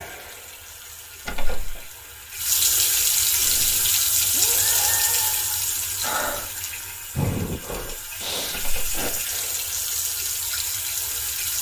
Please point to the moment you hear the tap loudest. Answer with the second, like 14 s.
3 s.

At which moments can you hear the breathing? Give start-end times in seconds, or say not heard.
3.4-9.1.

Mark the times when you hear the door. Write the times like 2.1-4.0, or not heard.
1.2-1.9, 8.5-9.2.